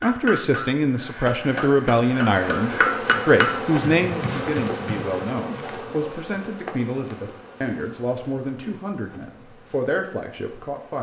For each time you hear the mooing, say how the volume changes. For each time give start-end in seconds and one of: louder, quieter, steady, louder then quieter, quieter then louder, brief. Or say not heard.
not heard.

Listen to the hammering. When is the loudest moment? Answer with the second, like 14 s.
3 s.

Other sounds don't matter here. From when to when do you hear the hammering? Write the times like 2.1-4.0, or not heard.
0.0-5.0.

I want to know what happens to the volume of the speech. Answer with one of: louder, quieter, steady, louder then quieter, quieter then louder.
quieter.